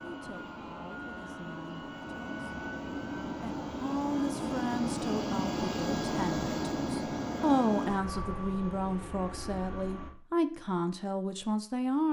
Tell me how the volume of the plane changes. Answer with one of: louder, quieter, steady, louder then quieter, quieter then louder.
louder then quieter.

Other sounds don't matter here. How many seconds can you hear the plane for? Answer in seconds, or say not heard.
10 s.